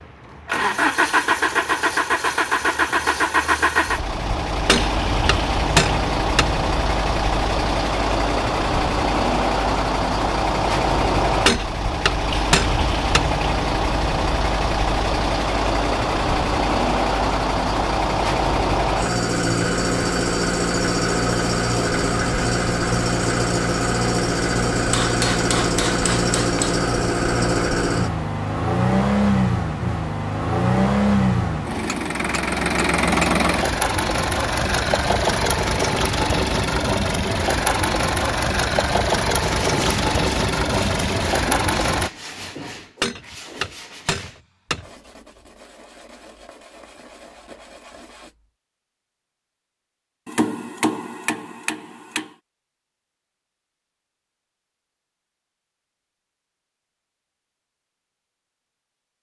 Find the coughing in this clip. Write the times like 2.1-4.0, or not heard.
not heard.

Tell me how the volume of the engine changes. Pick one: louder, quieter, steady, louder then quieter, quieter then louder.
steady.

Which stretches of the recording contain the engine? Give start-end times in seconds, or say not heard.
0.0-42.1.